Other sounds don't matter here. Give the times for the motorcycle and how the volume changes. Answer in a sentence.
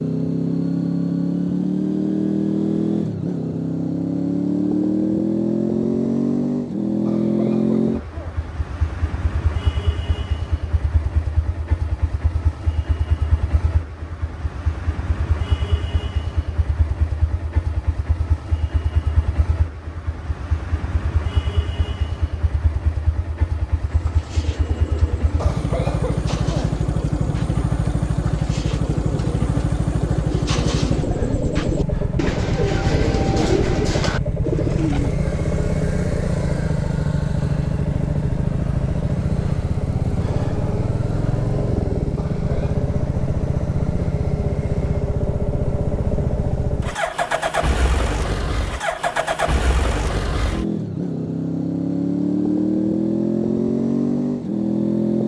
The motorcycle can be heard from 0.0 to 55.2 s, getting quieter then louder.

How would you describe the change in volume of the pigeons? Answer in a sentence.
The volume of the pigeons goes up.